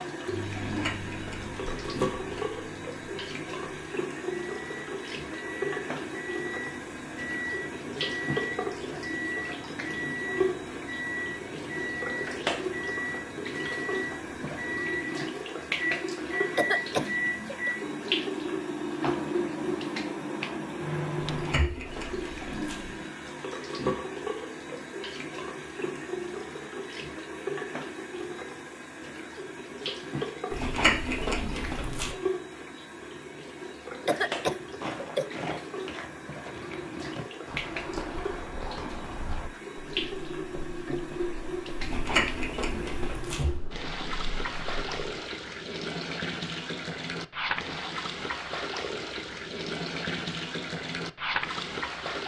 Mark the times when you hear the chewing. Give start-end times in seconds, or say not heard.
0.6-2.5, 21.2-22.9, 30.5-32.1, 41.8-43.5.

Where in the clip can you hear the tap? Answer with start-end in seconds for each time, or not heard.
0.0-52.2.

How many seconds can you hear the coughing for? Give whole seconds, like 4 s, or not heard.
2 s.